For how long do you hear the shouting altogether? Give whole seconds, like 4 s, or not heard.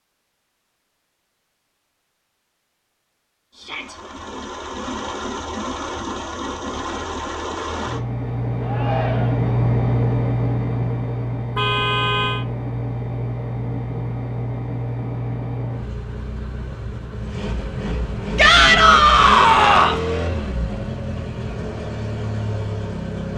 3 s.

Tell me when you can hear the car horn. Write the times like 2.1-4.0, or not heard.
11.6-12.4.